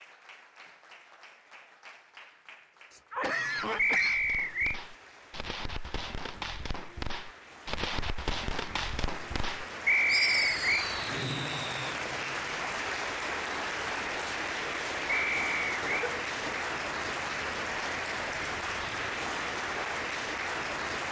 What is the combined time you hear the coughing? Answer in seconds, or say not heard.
2 s.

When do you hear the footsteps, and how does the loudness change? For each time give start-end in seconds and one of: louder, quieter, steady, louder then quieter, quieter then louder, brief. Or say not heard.
not heard.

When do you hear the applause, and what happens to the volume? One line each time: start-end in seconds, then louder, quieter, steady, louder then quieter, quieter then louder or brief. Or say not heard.
0.0-21.0 louder.